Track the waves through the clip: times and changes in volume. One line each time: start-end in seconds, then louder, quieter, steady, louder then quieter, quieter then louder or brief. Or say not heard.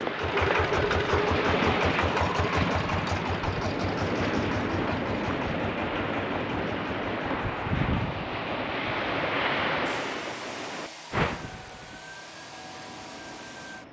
0.0-13.8 quieter.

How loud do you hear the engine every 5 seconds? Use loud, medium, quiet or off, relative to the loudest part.
loud, medium, quiet.